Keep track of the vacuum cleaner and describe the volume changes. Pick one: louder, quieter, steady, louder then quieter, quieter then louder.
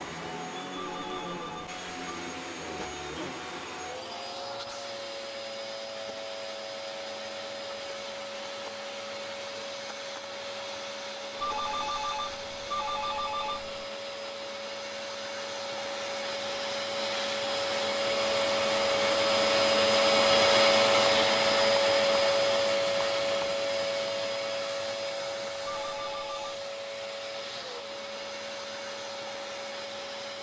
louder then quieter.